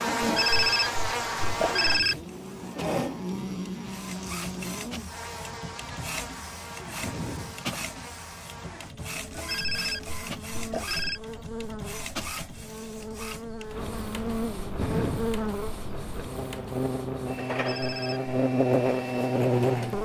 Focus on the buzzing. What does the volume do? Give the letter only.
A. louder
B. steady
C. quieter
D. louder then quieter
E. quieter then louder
E.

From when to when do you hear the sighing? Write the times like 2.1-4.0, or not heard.
7.0-7.7, 14.8-15.4.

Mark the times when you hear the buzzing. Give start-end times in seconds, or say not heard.
0.0-20.0.